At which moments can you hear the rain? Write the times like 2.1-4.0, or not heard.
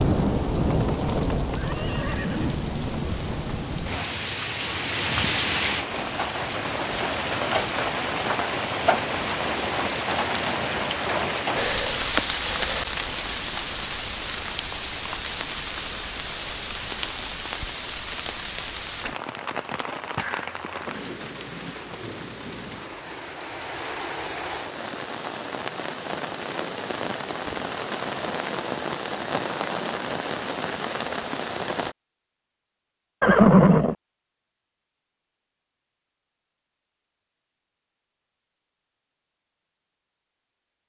0.0-31.9.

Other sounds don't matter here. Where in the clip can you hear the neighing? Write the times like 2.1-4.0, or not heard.
0.6-2.5, 33.2-34.0.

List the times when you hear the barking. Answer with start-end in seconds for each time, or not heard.
not heard.